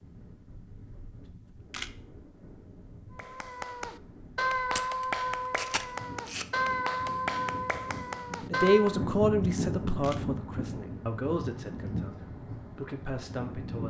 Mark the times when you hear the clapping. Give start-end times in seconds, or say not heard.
3.1-9.1.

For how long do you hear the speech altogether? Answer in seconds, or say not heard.
5 s.